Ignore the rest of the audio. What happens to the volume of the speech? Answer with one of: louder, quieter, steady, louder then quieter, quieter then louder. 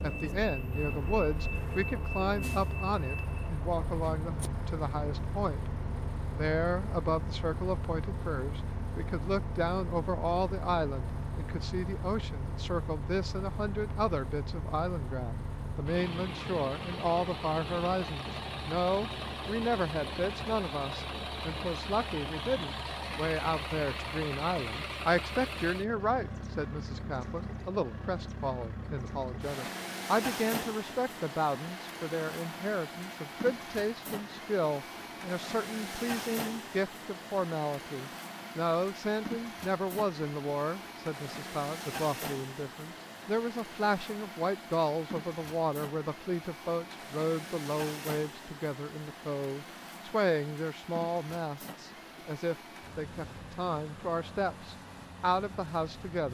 steady.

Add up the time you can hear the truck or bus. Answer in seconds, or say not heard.
56 s.